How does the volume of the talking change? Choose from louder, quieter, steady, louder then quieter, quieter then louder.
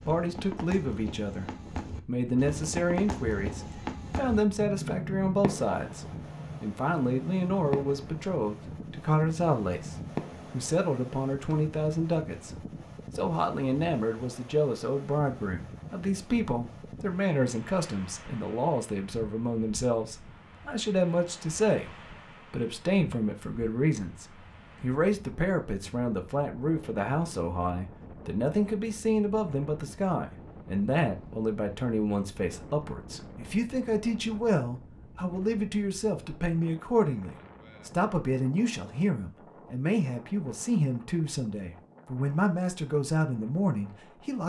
steady.